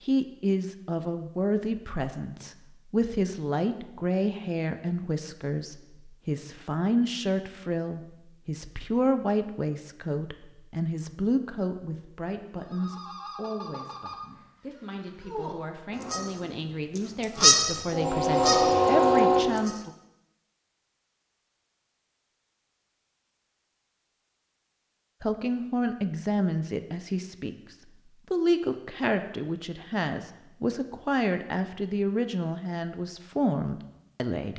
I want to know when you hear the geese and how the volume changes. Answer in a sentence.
The geese can be heard from 12.6 to 19.7 s, getting louder.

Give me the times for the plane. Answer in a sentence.
You can't hear the plane here.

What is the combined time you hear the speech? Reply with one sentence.
You can hear the speech for 29 seconds altogether.